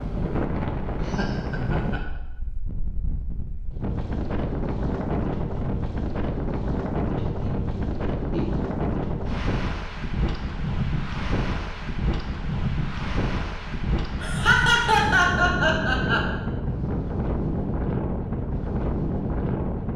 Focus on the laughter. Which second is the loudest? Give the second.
15 s.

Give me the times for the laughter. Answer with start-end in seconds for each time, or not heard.
1.1-2.0, 7.2-8.7, 14.2-16.2.